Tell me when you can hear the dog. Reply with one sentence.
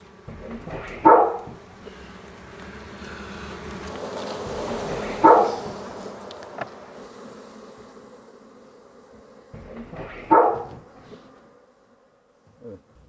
The dog can be heard from 0.2 to 1.5 s, from 4.5 to 5.7 s and from 9.6 to 10.8 s.